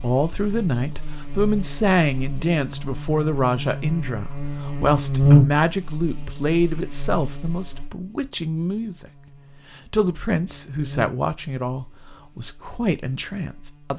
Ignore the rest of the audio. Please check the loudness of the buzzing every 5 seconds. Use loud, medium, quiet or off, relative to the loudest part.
medium, loud, quiet.